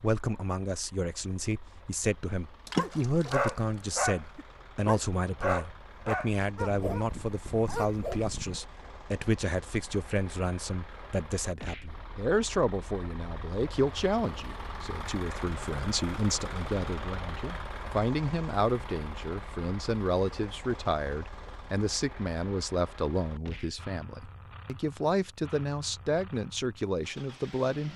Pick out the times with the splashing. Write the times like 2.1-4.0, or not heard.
2.6-4.0.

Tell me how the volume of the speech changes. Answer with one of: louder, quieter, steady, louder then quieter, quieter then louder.
steady.